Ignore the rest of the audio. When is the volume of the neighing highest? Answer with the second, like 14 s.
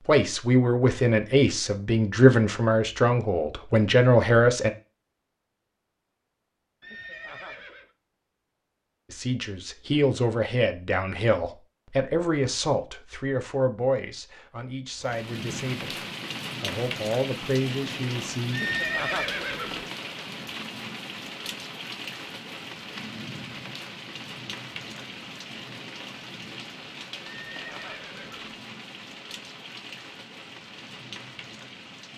19 s.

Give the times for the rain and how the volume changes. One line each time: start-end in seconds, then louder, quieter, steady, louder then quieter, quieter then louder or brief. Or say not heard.
15.0-32.1 quieter.